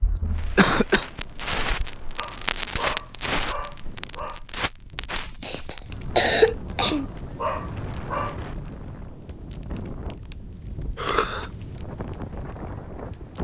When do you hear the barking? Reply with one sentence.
The barking can be heard from 2.1 to 4.4 s and from 6.8 to 8.4 s.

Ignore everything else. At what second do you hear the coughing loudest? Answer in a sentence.
The volume of the coughing peaks at 6 seconds.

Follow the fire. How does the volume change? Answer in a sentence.
The loudness of the fire goes down.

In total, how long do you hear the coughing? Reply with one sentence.
The coughing can be heard for 3 seconds in total.